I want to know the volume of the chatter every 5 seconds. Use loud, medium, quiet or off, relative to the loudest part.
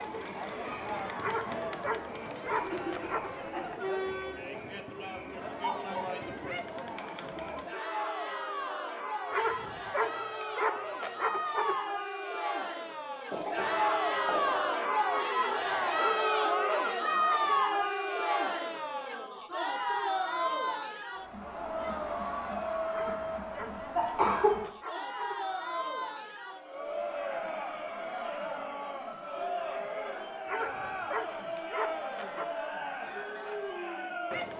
medium, medium, loud, loud, medium, medium, medium.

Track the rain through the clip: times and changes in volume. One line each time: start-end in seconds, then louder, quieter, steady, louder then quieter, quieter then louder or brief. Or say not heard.
not heard.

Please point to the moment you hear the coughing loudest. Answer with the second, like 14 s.
24 s.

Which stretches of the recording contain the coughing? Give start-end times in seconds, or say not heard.
2.5-3.7, 13.3-14.7, 23.9-24.6.